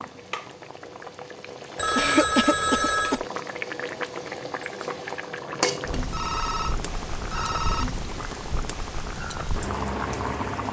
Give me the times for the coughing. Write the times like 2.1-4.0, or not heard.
1.9-3.2.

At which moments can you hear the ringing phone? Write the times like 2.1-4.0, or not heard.
1.8-3.2, 5.9-7.8.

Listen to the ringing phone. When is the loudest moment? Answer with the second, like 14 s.
3 s.